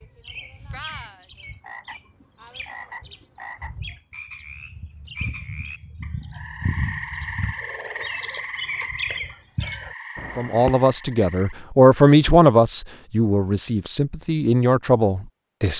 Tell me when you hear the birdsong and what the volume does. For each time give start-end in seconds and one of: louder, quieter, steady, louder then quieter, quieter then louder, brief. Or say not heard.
0.0-10.9 louder.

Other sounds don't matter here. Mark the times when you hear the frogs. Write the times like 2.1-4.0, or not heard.
0.0-11.6.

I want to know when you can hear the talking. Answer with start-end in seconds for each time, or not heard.
10.3-15.7.